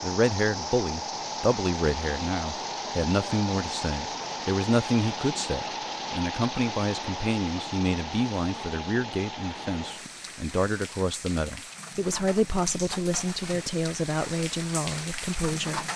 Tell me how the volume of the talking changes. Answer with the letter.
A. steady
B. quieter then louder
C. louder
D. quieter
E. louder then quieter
A.